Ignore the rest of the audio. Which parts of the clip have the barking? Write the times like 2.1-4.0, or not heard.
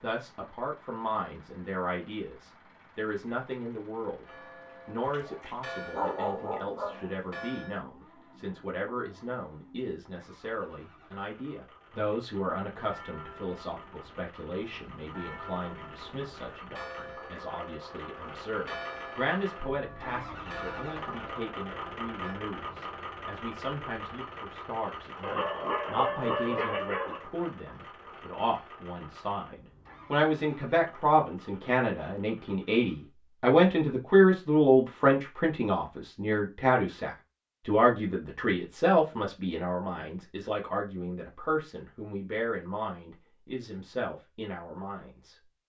5.0-7.0, 25.2-27.2.